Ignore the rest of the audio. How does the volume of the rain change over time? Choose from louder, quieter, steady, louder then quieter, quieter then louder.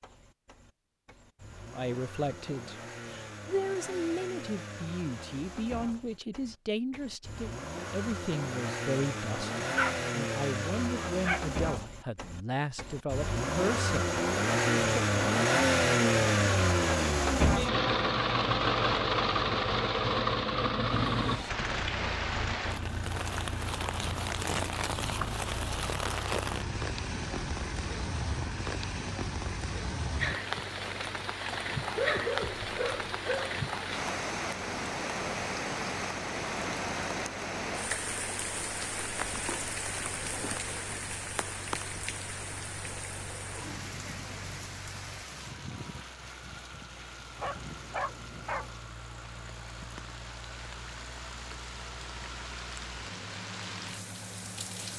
quieter.